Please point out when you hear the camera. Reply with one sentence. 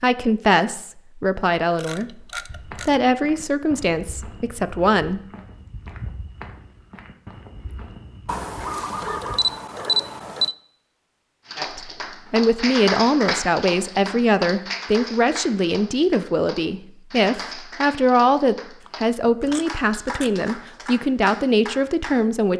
The camera can be heard from 1.8 to 3.0 s, from 8.2 to 10.6 s and from 18.9 to 20.4 s.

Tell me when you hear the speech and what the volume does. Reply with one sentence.
You can hear the speech from 0.0 to 5.2 s, getting quieter; and from 11.6 to 22.5 s, at a steady volume.